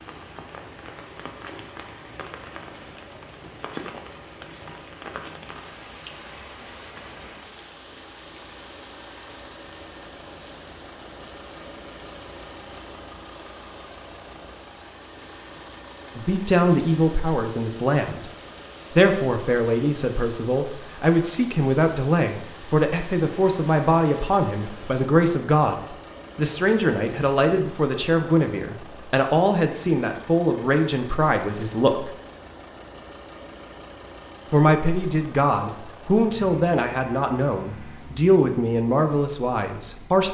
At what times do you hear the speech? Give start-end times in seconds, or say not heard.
16.1-18.2, 18.9-32.0, 34.5-40.2.